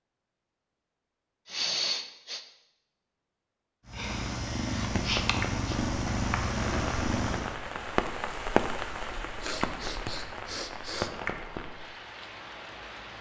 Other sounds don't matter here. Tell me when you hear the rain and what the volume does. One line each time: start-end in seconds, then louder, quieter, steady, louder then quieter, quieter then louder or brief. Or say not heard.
5.0-13.1 louder then quieter.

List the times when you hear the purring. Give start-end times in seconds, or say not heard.
3.9-7.5.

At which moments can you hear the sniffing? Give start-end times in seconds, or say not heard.
1.4-2.4, 5.0-5.8, 9.4-11.1.